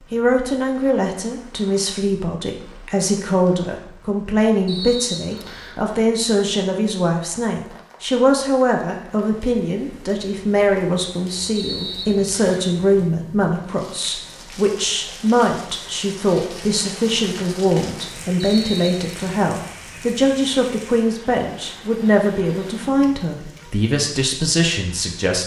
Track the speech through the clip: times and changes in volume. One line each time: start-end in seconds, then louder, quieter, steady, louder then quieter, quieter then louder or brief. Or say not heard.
0.1-25.4 steady.